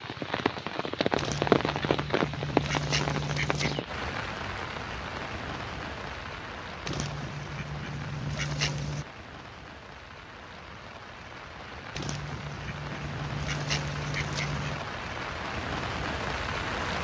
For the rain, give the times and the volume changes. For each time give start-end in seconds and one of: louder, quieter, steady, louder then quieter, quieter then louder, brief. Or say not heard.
0.0-16.9 quieter then louder.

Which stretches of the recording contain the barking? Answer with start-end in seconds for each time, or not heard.
not heard.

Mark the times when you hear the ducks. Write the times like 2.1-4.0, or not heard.
1.1-3.8, 6.8-9.1, 11.9-14.9.